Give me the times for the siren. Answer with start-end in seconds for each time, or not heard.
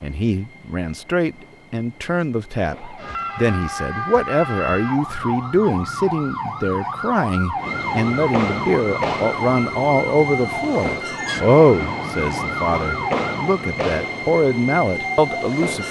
2.6-13.6.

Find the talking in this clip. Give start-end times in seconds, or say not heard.
0.0-15.8.